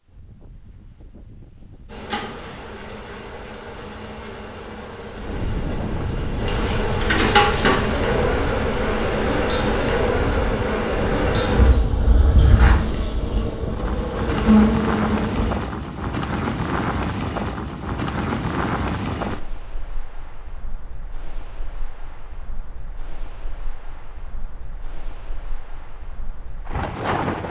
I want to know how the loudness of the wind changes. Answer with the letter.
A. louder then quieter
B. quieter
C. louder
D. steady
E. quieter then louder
A.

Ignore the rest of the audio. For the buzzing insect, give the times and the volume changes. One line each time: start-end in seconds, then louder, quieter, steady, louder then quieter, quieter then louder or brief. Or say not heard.
1.9-15.6 louder.